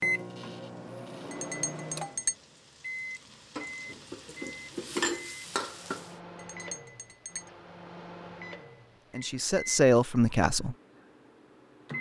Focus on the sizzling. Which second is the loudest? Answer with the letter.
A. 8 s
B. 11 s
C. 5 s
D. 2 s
C.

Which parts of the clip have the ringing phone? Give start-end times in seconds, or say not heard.
not heard.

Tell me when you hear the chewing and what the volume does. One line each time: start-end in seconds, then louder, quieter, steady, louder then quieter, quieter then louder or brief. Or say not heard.
not heard.